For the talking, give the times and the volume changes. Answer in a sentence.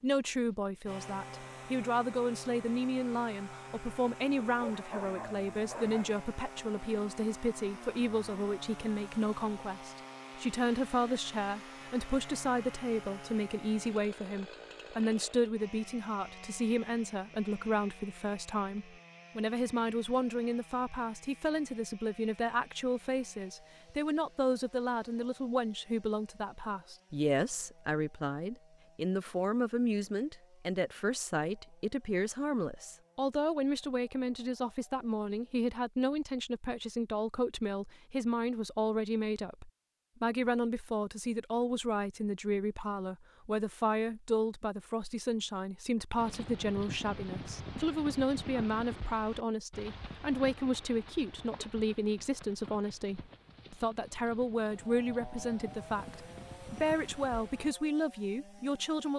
The talking can be heard from 0.0 to 59.1 s, at a steady volume.